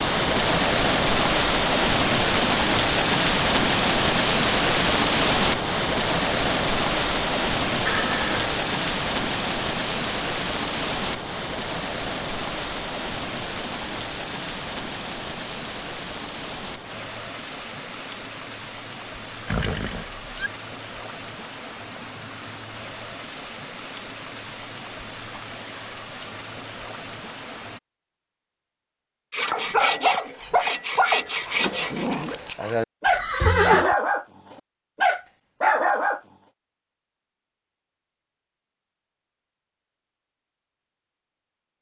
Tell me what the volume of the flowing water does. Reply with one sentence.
The loudness of the flowing water goes down.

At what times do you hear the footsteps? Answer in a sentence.
You can't hear the footsteps here.